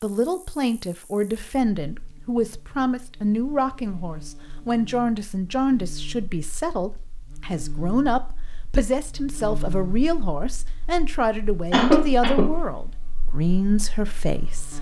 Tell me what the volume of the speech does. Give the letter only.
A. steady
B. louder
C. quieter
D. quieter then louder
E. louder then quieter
A.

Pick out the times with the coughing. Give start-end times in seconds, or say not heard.
11.7-12.5.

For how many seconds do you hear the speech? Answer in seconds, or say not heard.
15 s.